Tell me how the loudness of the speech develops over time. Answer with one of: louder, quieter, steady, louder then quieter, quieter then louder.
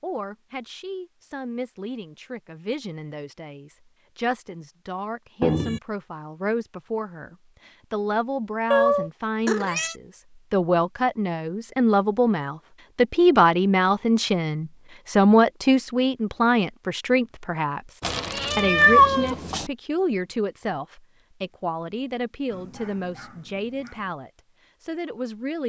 louder then quieter.